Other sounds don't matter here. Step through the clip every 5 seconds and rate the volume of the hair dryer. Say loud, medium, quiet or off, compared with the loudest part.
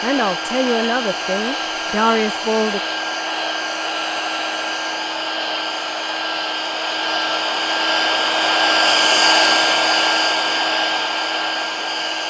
medium, loud, loud.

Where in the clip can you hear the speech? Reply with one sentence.
You can hear the speech from 0.0 to 2.8 s.